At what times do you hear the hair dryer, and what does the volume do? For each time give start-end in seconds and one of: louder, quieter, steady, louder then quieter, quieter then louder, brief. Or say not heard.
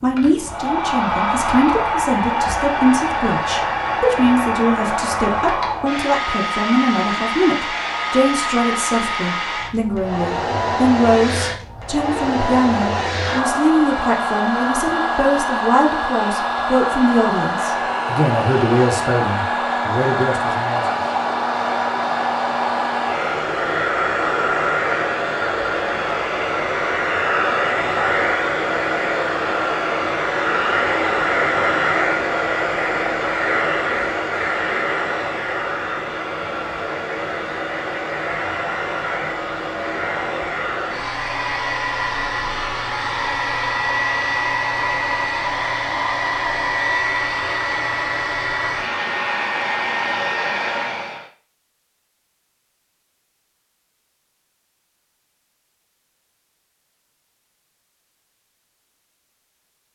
0.0-51.2 steady.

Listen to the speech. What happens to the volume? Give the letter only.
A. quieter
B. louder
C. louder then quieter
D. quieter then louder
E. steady
E.